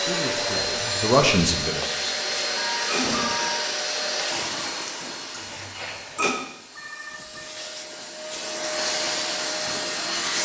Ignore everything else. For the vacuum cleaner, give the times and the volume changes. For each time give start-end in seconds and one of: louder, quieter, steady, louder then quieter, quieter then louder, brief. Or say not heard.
0.0-10.4 quieter then louder.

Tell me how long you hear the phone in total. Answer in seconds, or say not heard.
3 s.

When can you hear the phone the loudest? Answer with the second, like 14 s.
3 s.